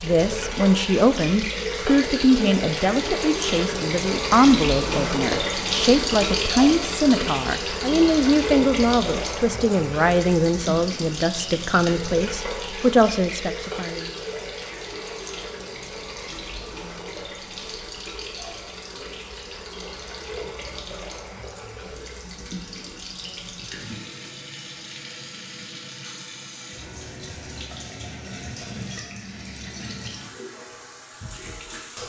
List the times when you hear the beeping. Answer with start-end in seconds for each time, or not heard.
not heard.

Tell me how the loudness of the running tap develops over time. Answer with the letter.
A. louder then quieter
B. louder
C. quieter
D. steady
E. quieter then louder
C.